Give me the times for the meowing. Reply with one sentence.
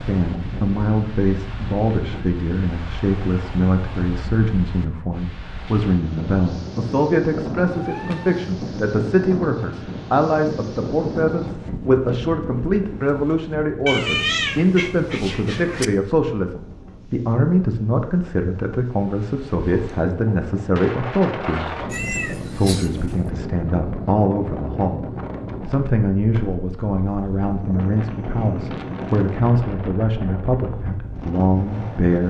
You can hear the meowing from 7.7 to 8.4 s, from 13.8 to 15.8 s and from 21.9 to 23.1 s.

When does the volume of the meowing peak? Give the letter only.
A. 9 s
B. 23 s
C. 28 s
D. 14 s
D.